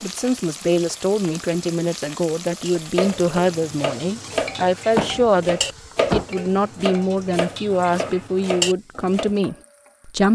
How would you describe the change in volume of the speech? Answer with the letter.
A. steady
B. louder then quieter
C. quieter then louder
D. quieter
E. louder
A.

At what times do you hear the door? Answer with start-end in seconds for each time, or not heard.
4.9-6.2.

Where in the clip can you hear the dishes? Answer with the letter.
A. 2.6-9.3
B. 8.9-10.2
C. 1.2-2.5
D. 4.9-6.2
A.